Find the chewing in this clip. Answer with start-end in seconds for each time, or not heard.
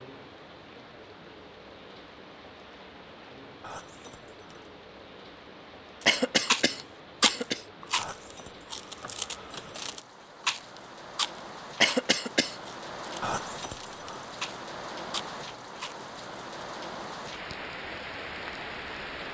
6.0-16.0.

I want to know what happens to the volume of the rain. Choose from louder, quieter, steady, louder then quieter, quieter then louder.
louder.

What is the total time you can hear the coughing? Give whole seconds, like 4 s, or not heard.
2 s.